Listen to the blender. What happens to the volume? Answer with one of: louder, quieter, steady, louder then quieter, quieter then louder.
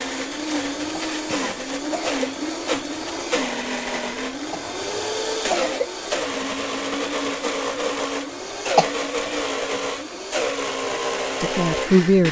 steady.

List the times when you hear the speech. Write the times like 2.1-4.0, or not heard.
11.4-12.2.